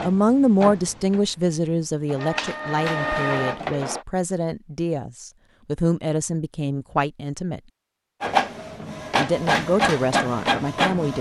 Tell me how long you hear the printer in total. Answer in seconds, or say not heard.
7 s.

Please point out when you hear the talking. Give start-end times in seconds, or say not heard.
0.0-7.6, 9.2-11.1.